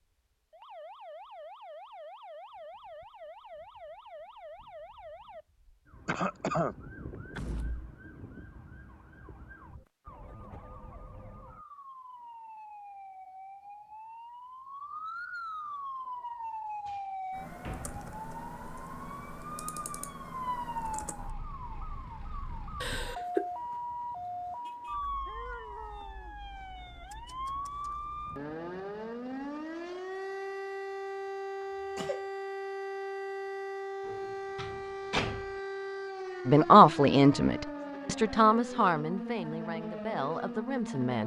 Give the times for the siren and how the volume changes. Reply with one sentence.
The siren can be heard from 0.5 to 41.2 s, getting louder.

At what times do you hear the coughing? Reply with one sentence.
The coughing can be heard from 6.0 to 6.8 s, from 22.8 to 23.4 s and from 31.6 to 32.2 s.